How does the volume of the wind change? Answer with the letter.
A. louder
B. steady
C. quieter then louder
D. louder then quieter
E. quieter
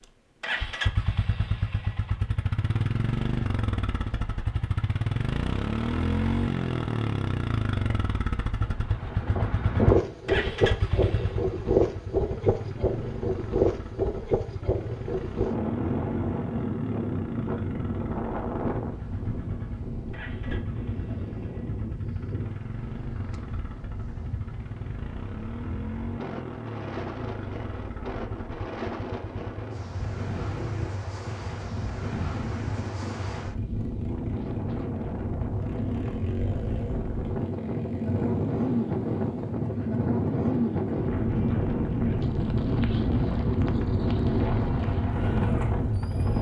C.